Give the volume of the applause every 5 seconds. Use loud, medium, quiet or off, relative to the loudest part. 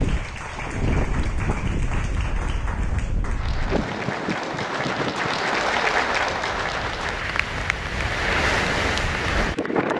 medium, loud.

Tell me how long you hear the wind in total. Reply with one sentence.
You can hear the wind for 10 seconds altogether.